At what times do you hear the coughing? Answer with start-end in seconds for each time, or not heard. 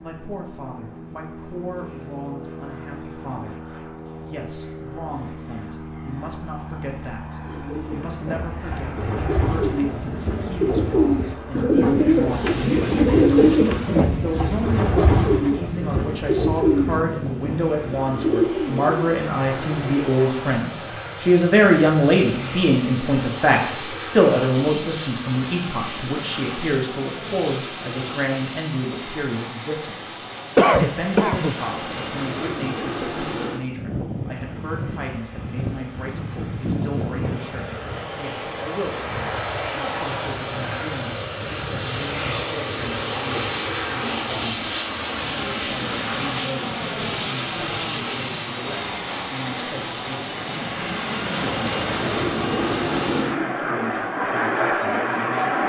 30.6-31.6.